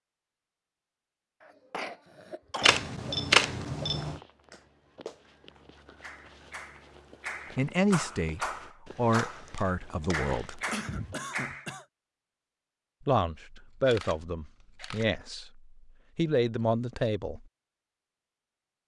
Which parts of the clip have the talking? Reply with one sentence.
You can hear the talking from 7.5 to 10.6 s and from 13.1 to 17.4 s.